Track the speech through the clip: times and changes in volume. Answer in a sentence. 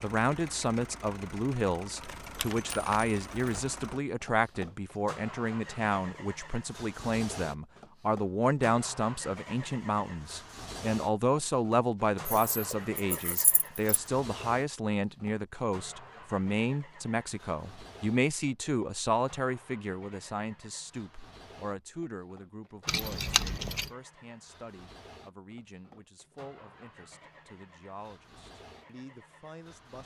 You can hear the speech from 0.0 to 30.0 s, getting quieter.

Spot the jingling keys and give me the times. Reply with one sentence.
The jingling keys can be heard from 2.0 to 3.6 s, from 12.2 to 14.0 s and from 22.9 to 23.9 s.